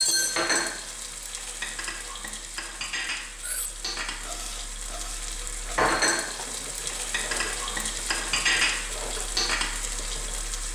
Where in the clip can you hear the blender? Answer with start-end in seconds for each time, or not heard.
not heard.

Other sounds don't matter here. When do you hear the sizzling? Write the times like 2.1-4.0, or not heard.
0.0-10.7.